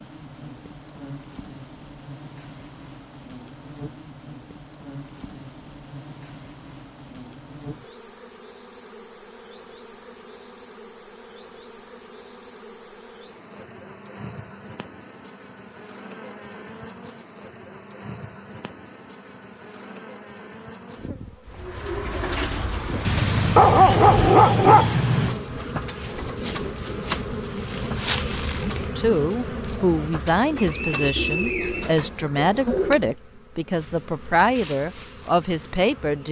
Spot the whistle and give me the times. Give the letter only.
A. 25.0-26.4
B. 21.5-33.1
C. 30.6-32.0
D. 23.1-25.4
C.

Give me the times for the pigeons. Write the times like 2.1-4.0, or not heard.
21.5-33.1.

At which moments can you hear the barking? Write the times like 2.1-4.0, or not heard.
23.1-25.4.